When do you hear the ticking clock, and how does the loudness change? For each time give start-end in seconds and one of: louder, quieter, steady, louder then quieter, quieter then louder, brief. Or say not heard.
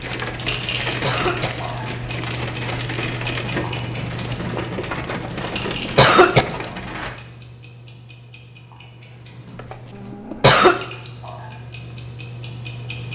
0.0-13.1 quieter then louder.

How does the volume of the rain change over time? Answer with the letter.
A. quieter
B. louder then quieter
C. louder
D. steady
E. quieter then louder
D.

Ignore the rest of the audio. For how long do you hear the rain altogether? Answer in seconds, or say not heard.
7 s.